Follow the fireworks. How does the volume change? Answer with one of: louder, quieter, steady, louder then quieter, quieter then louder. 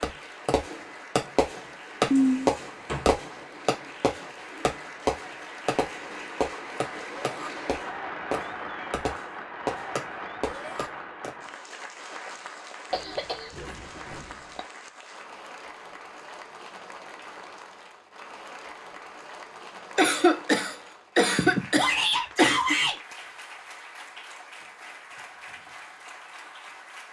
quieter.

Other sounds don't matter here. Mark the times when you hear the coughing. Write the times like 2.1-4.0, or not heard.
2.1-3.1, 12.9-14.6, 19.9-22.8.